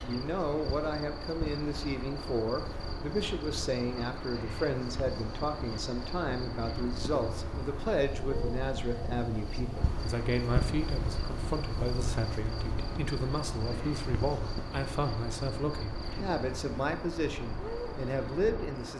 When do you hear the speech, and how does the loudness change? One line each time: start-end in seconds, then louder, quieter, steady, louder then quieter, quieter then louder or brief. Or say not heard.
0.0-18.9 steady.